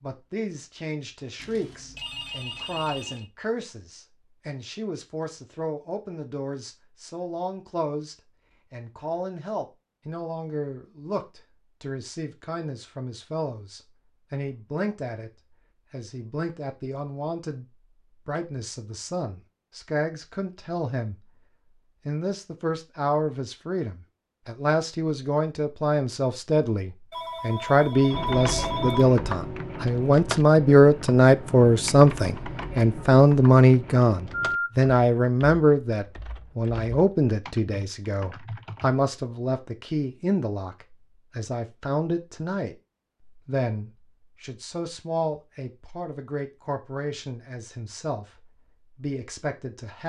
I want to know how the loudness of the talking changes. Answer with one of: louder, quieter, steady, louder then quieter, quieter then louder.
louder then quieter.